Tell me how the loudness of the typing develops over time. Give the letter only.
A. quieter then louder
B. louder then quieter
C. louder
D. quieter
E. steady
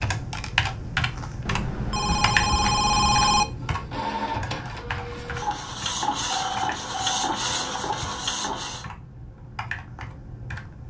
D.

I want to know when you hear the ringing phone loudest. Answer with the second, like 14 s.
3 s.